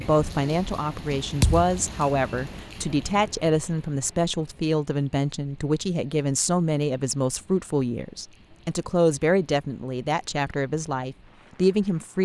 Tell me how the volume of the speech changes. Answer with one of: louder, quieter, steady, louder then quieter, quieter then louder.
steady.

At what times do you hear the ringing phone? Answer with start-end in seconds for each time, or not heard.
not heard.